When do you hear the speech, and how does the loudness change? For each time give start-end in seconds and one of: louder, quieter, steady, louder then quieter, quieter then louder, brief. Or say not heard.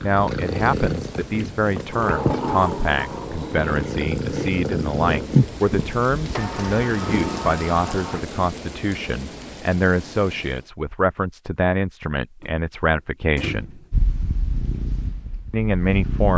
0.0-13.8 steady
15.5-16.3 brief.